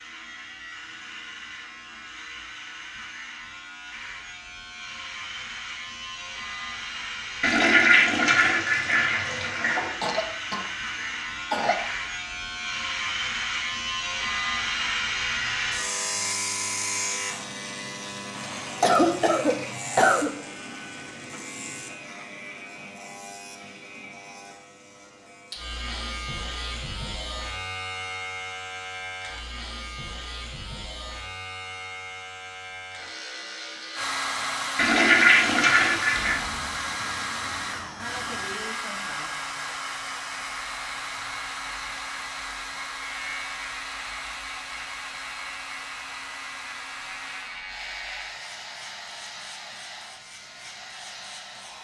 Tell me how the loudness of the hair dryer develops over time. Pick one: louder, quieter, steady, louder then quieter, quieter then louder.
quieter.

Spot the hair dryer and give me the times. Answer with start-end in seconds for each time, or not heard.
33.9-51.7.